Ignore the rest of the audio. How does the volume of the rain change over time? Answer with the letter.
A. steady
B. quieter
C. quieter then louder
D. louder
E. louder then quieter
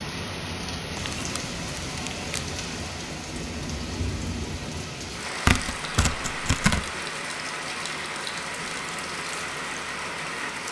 A.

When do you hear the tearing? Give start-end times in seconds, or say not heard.
0.9-2.5, 5.5-6.8.